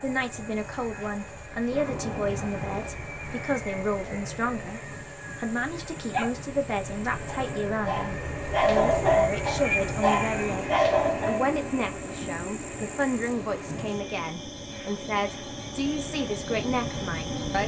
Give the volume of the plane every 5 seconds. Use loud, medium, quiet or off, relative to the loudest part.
medium, loud, loud, loud.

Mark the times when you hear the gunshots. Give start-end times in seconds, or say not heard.
1.7-3.0.